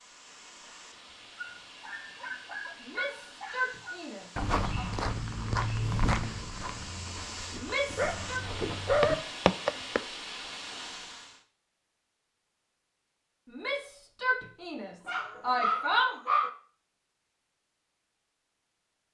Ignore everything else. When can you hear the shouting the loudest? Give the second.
16 s.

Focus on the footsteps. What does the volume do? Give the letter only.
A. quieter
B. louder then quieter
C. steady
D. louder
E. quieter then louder
E.